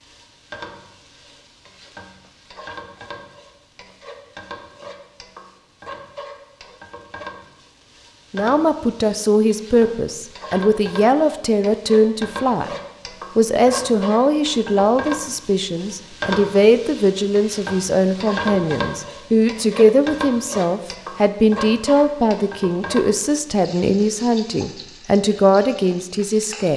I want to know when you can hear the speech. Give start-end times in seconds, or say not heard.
8.3-12.7, 13.3-26.7.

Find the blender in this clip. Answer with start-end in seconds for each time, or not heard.
not heard.